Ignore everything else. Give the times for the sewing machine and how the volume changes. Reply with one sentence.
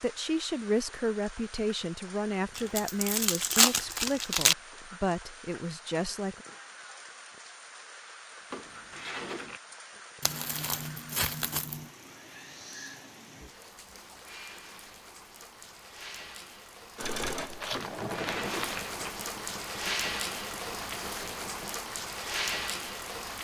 You can hear the sewing machine from 16.9 to 21.8 s, getting quieter.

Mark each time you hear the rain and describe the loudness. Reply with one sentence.
The rain can be heard from 0.0 to 23.3 s, getting louder.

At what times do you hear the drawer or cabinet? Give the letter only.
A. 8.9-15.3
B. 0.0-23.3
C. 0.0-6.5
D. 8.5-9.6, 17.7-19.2
D.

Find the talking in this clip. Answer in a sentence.
The talking can be heard from 0.0 to 6.5 s.